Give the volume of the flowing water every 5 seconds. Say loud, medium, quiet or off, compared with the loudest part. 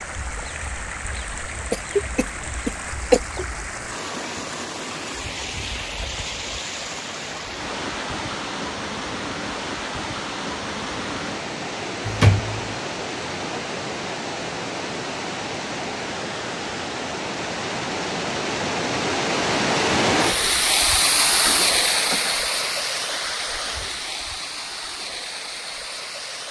medium, medium, medium, loud, loud, medium.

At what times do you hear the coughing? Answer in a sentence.
The coughing can be heard from 1.7 to 3.5 s, from 12.1 to 12.8 s and from 21.4 to 22.4 s.